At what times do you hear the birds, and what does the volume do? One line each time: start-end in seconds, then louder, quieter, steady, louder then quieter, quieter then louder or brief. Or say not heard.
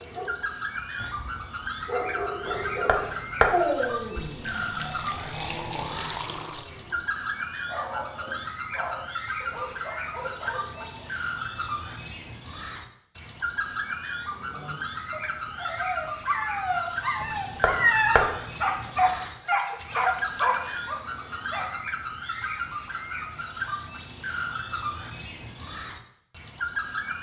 0.0-27.1 steady.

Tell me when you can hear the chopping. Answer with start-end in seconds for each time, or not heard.
2.5-3.6, 17.2-18.4.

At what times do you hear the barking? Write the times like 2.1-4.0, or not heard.
0.0-11.2, 14.5-21.6.